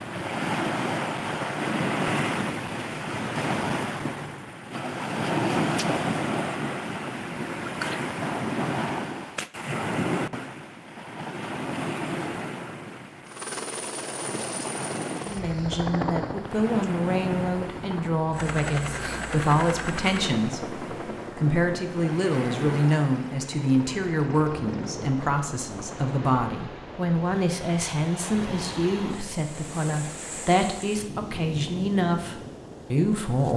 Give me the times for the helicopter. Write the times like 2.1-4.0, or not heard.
13.2-25.1.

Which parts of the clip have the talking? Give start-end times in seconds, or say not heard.
15.2-33.5.